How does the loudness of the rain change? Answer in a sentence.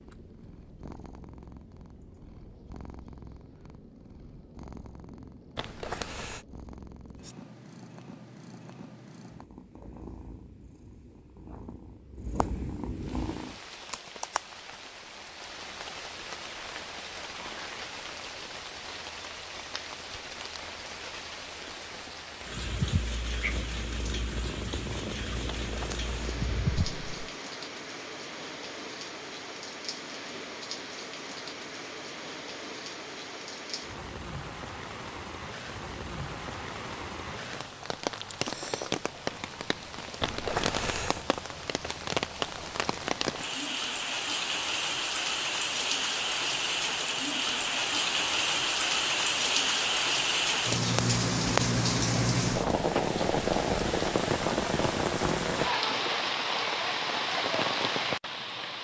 The volume of the rain goes up.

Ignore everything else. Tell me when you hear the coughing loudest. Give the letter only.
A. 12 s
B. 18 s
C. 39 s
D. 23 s
C.